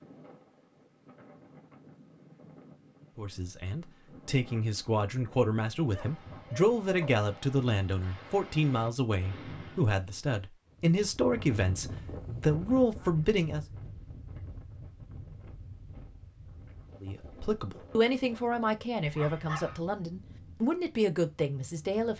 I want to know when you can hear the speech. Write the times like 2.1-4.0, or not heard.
3.1-13.7, 17.0-22.1.